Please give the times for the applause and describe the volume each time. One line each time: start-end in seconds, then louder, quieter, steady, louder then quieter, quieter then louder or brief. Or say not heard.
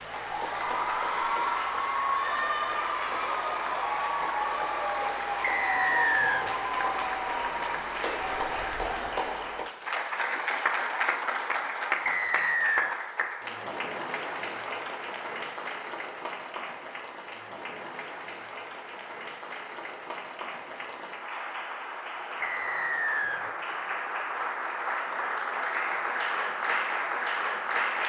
0.0-28.0 quieter then louder.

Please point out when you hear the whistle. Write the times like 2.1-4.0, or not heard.
5.4-6.5, 12.1-12.9, 22.4-23.4.